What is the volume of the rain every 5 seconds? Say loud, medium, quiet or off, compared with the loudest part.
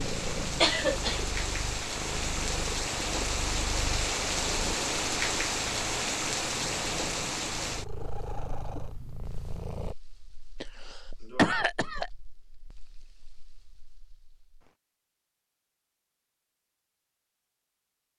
loud, loud, quiet, off.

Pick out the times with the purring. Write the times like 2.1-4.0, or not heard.
0.0-9.9.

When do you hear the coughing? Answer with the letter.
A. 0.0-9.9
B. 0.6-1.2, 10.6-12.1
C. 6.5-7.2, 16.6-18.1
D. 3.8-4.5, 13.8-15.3
B.